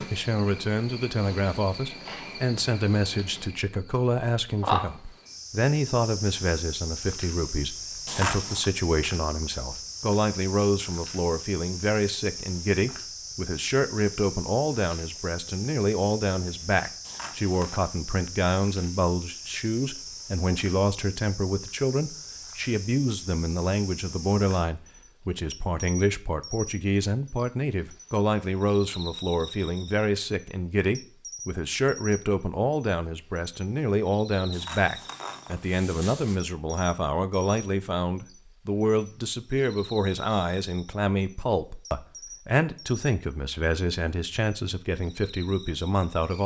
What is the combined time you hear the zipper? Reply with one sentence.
You can hear the zipper for 3 seconds altogether.